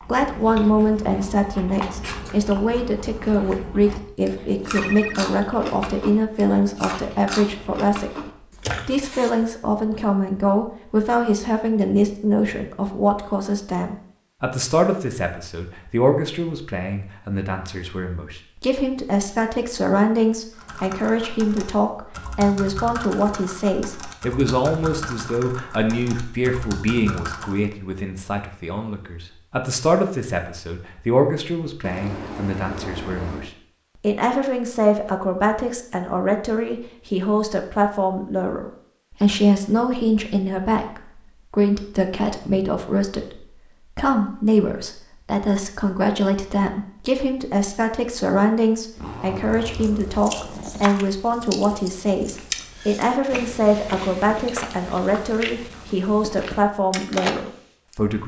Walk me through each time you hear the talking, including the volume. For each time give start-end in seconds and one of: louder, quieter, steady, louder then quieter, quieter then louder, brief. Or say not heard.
0.0-8.2 steady
8.8-58.2 steady.